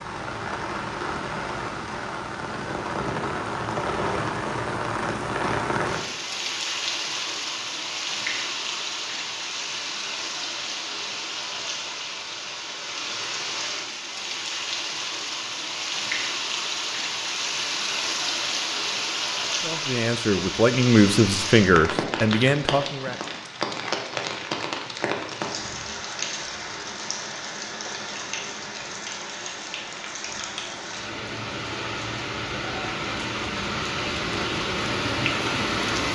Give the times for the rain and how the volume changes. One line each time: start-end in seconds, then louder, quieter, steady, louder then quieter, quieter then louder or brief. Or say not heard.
0.0-36.1 steady.